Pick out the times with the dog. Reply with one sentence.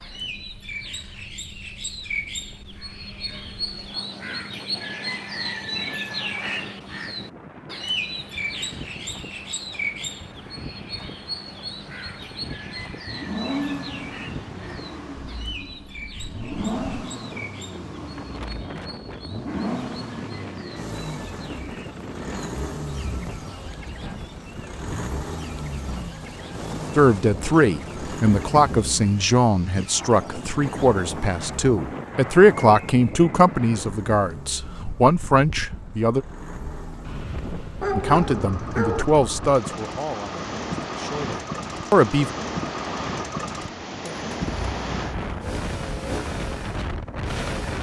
You can hear the dog from 37.8 to 39.0 s.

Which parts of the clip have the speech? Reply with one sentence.
The speech can be heard from 26.9 to 36.2 s and from 38.0 to 42.4 s.